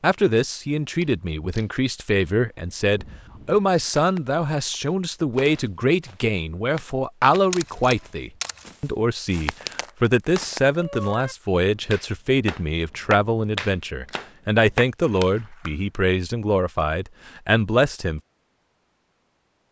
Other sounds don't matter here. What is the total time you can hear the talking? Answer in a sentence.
You can hear the talking for 18 seconds altogether.